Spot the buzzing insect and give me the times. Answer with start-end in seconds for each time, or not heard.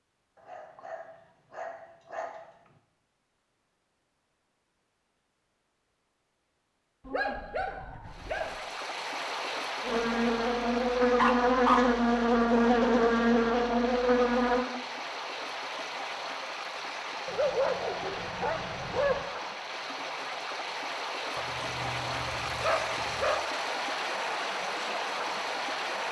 9.8-14.7.